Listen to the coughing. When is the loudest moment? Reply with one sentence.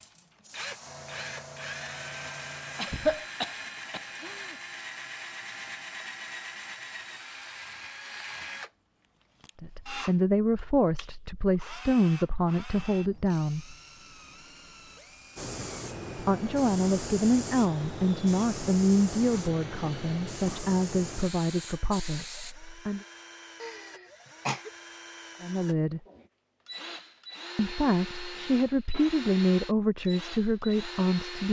The loudest moment of the coughing is at 3 seconds.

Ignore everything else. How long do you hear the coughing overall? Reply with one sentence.
You can hear the coughing for 3 seconds altogether.